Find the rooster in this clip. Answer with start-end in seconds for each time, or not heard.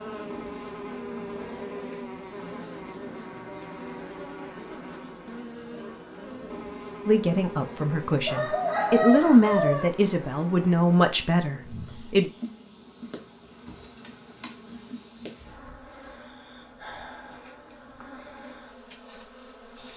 8.2-9.9.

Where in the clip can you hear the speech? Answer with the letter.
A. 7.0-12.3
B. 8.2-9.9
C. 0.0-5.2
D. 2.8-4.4
A.